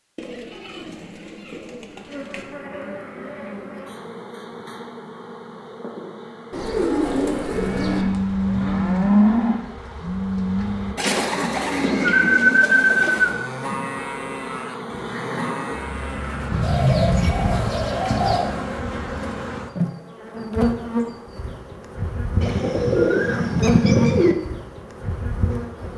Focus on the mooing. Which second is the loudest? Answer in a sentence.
The volume of the mooing peaks at 9 seconds.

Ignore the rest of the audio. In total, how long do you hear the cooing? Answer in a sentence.
The cooing can be heard for 10 seconds in total.